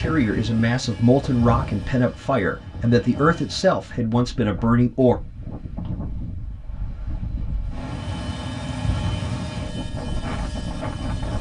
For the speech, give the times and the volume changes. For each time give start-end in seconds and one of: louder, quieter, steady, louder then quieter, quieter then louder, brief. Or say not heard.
0.0-5.2 steady.